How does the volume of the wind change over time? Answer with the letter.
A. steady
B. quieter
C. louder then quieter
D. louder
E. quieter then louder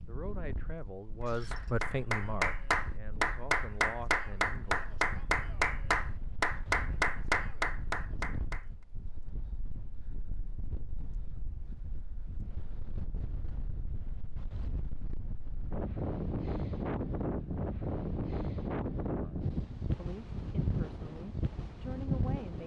D.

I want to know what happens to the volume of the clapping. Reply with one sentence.
The volume of the clapping stays about the same.